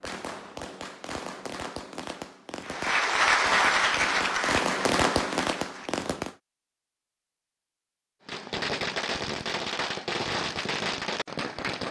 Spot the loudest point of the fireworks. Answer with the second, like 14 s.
5 s.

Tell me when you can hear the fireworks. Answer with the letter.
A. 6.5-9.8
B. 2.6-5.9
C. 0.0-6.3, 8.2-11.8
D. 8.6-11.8
C.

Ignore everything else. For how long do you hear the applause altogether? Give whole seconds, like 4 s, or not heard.
3 s.